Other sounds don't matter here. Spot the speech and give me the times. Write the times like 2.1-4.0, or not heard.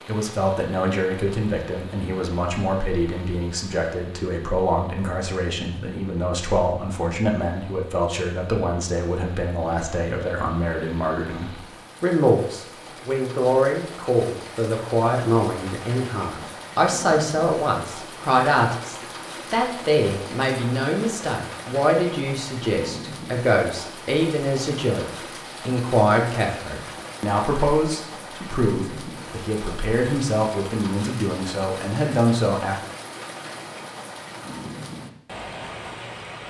0.1-32.8.